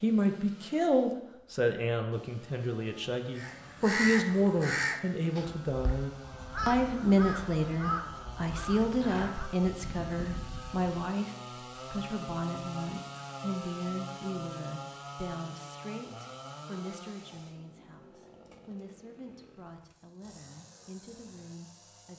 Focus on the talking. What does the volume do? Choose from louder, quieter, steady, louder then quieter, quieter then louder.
quieter.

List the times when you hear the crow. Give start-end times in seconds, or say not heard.
3.4-10.8.